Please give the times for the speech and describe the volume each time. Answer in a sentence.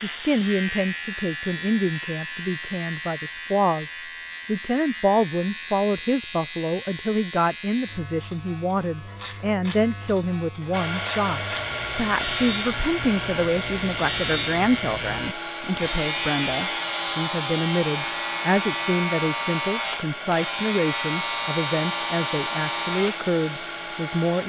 The speech can be heard from 0.0 to 24.4 s, at a steady volume.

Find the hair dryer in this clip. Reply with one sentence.
You can hear the hair dryer from 10.7 to 24.4 s.